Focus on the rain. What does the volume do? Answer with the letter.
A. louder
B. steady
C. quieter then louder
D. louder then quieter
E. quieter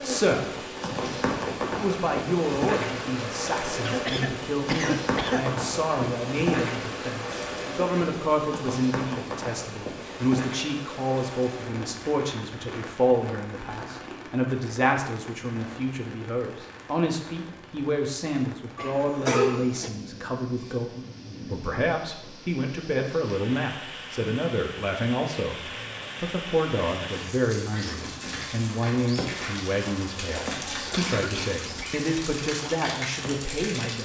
C.